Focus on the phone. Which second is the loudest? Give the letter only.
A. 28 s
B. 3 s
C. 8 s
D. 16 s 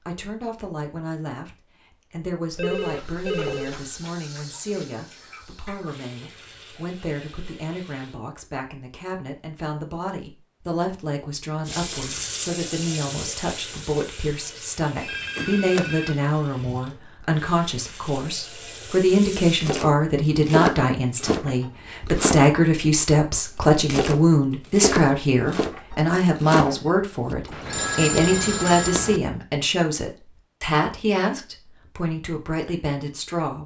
A.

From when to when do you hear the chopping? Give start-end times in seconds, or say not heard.
19.6-27.6.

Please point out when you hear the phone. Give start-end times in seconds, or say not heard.
2.5-3.9, 14.9-16.1, 27.5-29.2.